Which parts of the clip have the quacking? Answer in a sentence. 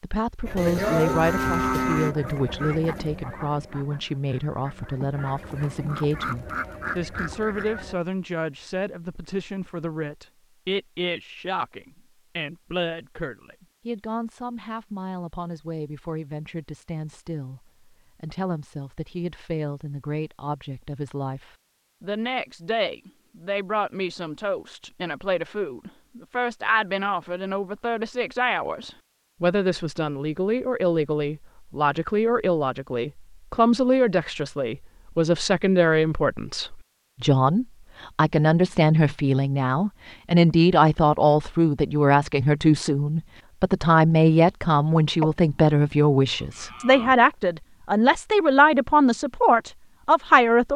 You can hear the quacking from 0.5 to 8.0 s.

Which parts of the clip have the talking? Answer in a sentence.
The talking can be heard from 0.0 to 50.7 s.